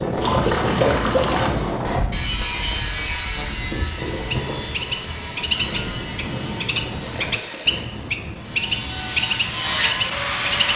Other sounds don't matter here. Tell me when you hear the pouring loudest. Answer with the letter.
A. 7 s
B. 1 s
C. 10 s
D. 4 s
B.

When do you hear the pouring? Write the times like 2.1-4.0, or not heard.
0.2-1.6, 7.0-7.8.